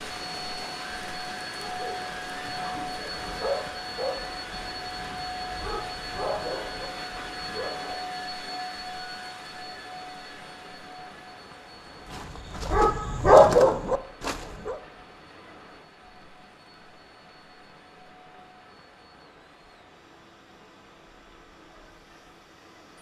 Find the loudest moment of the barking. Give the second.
13 s.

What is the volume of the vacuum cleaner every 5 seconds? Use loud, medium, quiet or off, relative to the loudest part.
loud, loud, medium, quiet, quiet.